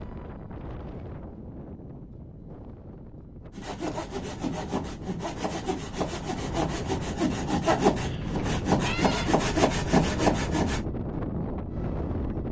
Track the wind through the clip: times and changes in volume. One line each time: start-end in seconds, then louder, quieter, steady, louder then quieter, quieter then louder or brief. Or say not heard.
0.0-12.4 louder.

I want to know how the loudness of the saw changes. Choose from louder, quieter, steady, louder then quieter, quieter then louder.
louder.